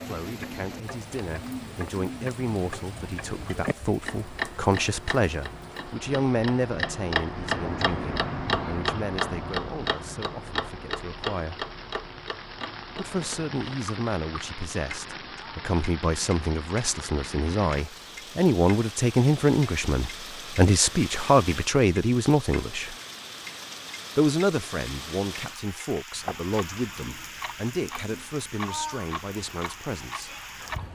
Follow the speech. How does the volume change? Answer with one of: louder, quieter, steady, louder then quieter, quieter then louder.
louder then quieter.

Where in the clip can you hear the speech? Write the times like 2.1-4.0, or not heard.
0.0-11.7, 12.9-22.9, 24.1-30.4.